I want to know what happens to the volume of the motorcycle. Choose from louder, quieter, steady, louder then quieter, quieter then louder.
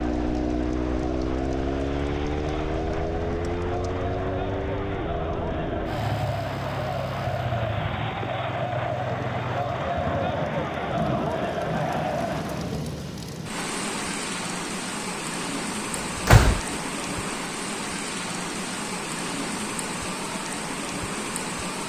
quieter.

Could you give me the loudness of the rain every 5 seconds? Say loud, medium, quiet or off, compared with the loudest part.
quiet, medium, loud, loud, loud.